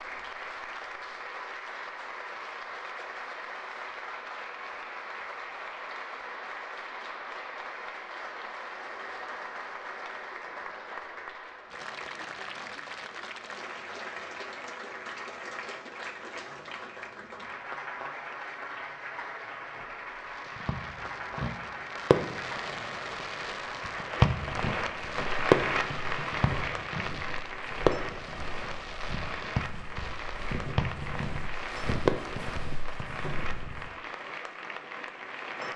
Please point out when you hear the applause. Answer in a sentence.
You can hear the applause from 0.0 to 35.7 s.